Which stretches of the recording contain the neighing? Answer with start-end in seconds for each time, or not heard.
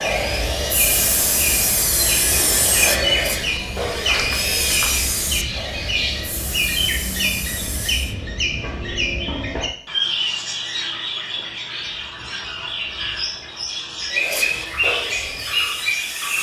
not heard.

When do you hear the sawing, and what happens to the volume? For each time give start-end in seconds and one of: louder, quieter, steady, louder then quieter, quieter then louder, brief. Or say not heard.
0.0-8.2 quieter
14.1-16.3 brief.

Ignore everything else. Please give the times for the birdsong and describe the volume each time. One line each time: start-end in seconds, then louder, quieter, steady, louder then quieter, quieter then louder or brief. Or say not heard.
0.0-16.3 steady.